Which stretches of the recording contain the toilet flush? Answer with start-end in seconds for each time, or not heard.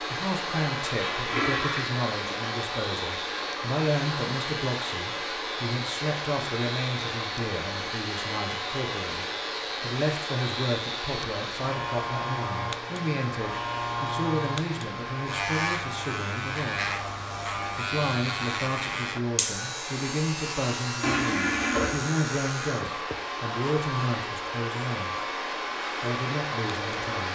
0.8-1.9, 21.0-22.0.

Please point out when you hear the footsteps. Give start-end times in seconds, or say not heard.
not heard.